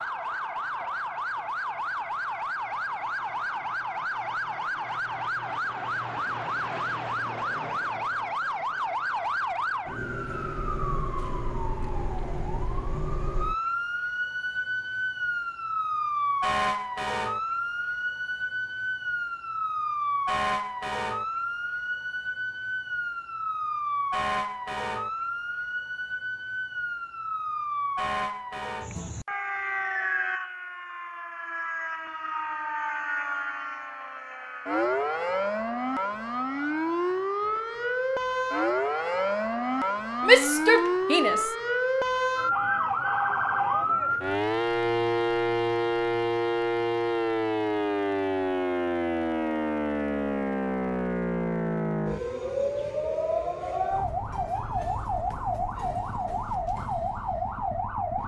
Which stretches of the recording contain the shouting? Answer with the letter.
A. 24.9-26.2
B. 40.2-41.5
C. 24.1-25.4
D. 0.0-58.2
B.